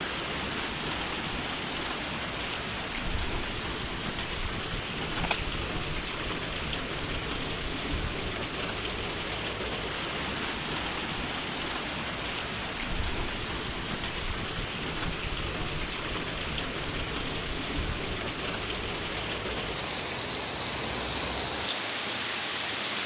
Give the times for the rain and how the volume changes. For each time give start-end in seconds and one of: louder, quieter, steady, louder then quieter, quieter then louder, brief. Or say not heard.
0.0-23.0 steady.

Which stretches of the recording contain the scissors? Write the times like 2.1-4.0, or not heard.
5.0-5.7.